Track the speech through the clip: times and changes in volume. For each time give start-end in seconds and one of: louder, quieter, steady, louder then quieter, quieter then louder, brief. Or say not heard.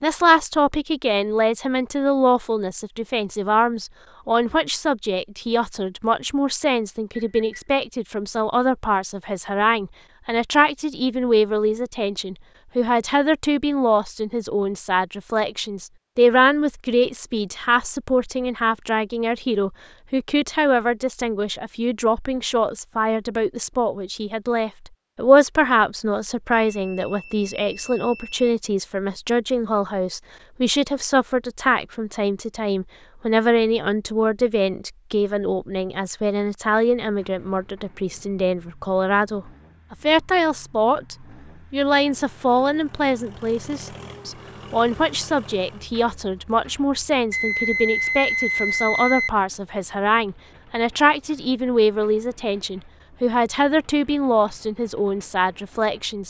0.0-56.2 steady.